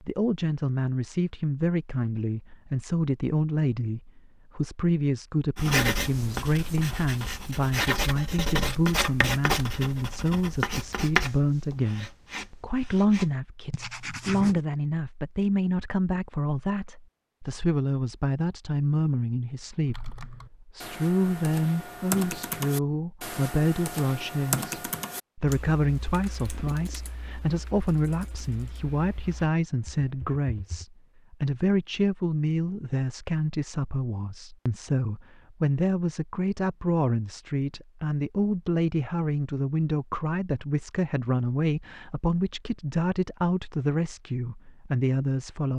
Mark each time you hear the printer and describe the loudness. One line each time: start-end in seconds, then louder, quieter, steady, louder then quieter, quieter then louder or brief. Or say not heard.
not heard.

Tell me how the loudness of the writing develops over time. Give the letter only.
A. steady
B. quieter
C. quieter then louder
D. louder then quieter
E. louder
D.